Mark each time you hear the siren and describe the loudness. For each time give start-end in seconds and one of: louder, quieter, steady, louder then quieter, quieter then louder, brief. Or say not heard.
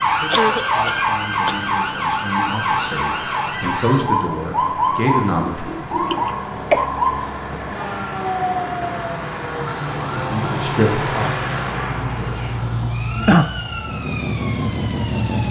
0.0-15.4 quieter.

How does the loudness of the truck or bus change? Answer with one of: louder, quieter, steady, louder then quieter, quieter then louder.
louder.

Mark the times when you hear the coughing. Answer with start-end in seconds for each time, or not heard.
0.3-1.6, 5.5-6.8, 12.8-13.5.